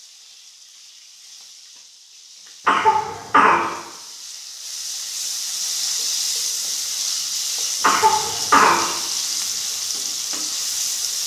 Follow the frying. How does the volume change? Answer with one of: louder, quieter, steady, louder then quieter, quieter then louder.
louder.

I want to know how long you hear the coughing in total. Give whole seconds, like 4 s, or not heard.
2 s.